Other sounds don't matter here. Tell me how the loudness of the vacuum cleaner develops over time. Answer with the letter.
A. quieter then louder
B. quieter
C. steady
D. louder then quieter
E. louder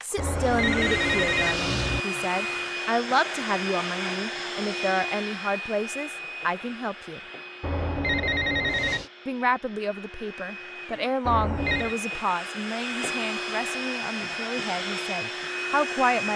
A.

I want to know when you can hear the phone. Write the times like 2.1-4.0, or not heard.
0.1-2.0, 7.6-9.1, 11.2-11.9.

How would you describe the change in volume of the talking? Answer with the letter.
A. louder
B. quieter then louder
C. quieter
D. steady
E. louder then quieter
D.